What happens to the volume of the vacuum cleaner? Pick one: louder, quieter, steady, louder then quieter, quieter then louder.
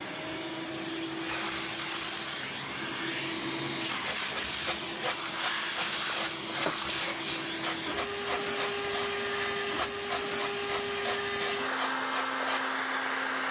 steady.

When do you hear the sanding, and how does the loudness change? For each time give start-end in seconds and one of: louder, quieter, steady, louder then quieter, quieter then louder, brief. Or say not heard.
3.9-12.7 steady.